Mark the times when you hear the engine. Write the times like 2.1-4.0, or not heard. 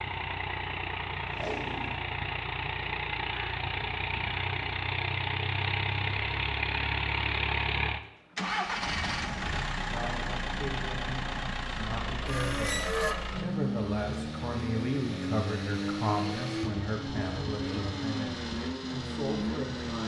0.0-20.0.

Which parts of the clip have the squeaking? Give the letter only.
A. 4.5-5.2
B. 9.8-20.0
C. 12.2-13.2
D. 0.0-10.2
C.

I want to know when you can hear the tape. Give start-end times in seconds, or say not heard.
1.3-2.0.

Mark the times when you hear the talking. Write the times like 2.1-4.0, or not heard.
9.8-20.0.